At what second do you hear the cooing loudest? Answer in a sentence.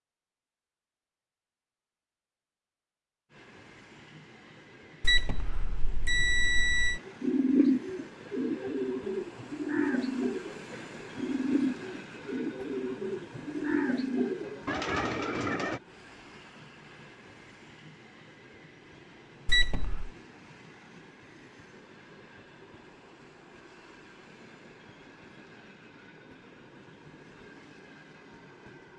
The volume of the cooing peaks at 8 seconds.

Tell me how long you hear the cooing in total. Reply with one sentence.
The cooing can be heard for 9 seconds in total.